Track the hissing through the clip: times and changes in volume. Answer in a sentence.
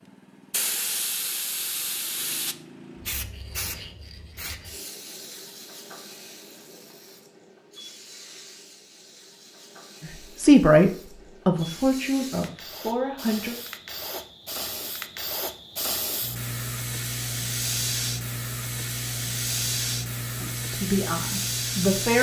The hissing can be heard from 0.1 to 22.1 s, getting quieter then louder.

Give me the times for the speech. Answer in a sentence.
The speech can be heard from 10.2 to 13.6 s and from 20.4 to 22.1 s.